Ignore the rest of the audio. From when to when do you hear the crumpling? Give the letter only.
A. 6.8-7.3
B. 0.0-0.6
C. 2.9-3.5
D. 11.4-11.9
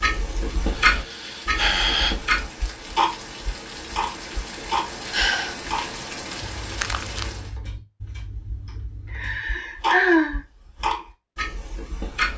A.